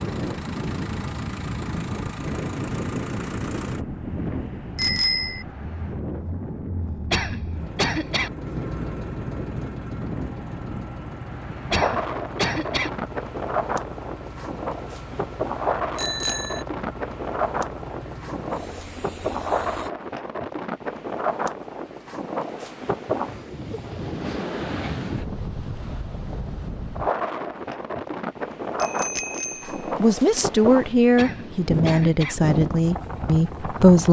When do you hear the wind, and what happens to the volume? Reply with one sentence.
You can hear the wind from 0.0 to 34.0 s, at a steady volume.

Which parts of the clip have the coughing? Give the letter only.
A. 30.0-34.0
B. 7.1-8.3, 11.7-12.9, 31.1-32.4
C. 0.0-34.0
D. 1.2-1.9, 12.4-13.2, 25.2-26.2
B.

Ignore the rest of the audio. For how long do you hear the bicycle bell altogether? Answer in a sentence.
The bicycle bell can be heard for 2 seconds in total.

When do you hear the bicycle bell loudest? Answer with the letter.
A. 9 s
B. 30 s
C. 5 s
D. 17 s
C.